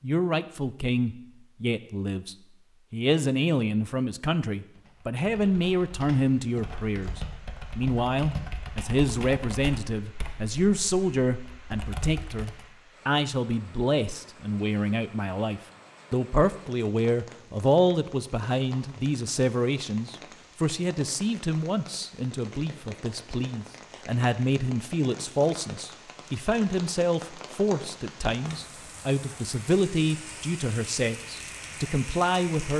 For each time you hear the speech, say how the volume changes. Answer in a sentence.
You can hear the speech from 0.0 to 32.7 s, at a steady volume.